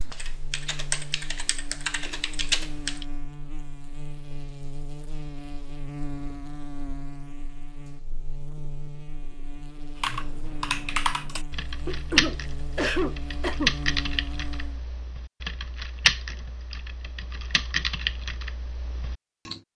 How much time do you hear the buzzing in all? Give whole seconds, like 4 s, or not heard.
15 s.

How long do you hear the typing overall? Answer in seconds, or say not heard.
13 s.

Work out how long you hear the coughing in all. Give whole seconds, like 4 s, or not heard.
2 s.